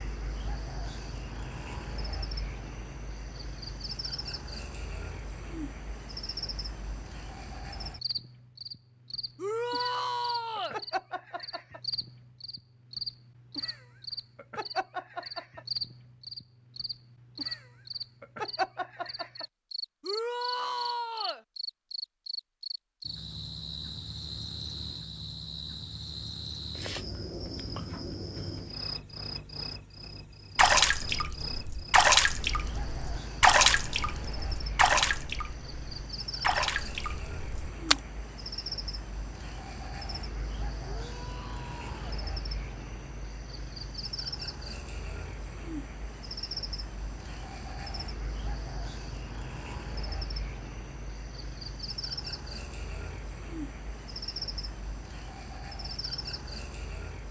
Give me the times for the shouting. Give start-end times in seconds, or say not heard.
9.3-10.8, 20.0-21.4, 40.9-42.0.